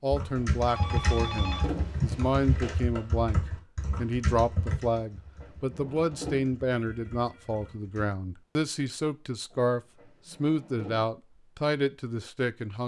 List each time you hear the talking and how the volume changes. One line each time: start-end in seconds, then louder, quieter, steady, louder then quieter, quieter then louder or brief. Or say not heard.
0.0-12.8 steady.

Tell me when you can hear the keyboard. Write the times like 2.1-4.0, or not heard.
0.1-8.1.